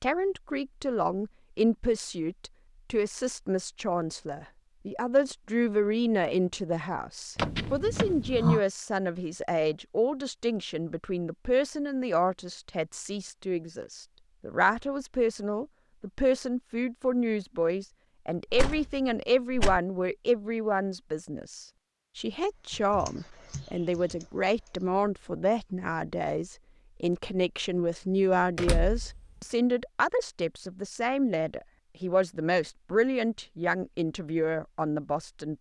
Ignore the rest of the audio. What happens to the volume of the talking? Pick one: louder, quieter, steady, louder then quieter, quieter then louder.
steady.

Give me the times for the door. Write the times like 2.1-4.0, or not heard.
7.3-8.6, 18.5-19.8, 28.6-29.2.